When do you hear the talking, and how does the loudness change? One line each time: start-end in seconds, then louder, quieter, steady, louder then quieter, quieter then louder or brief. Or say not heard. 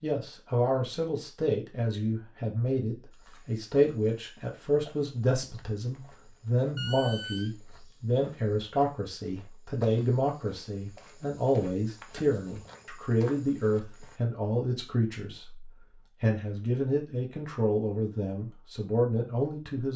0.0-19.9 steady.